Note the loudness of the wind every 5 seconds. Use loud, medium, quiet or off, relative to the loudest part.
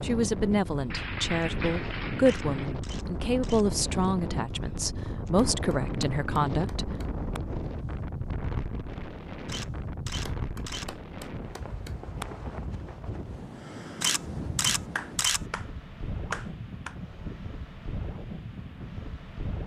loud, loud, loud, medium.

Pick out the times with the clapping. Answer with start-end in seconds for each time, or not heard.
0.9-2.8, 5.3-7.4, 10.2-12.2, 14.9-16.9.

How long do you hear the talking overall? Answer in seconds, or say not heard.
7 s.